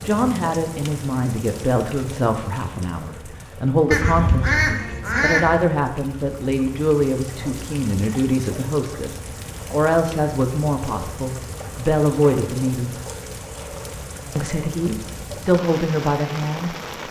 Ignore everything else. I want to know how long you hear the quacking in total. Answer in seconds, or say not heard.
2 s.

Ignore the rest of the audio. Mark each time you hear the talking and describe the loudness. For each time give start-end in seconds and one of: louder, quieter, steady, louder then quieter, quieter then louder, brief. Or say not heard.
0.0-12.9 steady
14.3-17.0 brief.